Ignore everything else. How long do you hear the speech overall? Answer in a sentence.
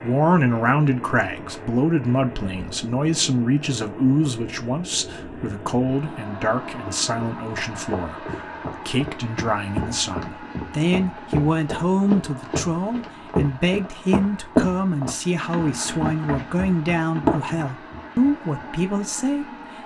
The speech can be heard for 20 seconds in total.